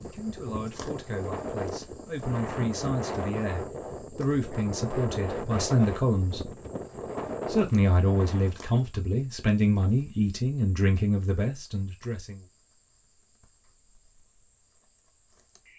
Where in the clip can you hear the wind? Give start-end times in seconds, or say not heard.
0.0-8.6.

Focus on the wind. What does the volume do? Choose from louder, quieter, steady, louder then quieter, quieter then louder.
steady.